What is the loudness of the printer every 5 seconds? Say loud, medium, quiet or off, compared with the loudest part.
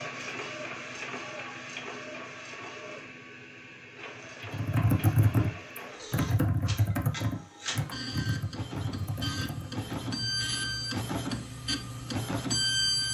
medium, medium, loud.